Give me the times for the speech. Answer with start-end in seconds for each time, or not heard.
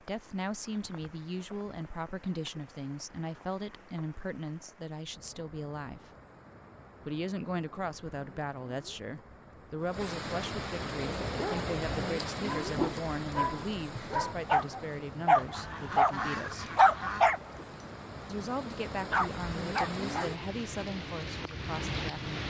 0.0-6.1, 7.0-16.8, 18.2-22.4.